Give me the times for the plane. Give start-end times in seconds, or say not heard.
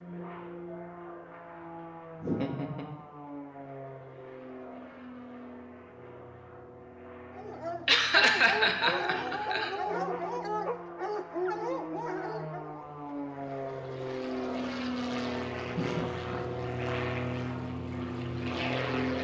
0.0-19.1.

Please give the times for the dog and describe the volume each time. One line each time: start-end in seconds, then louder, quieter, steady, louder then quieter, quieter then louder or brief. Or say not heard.
7.3-12.9 steady.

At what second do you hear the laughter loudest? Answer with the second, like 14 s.
8 s.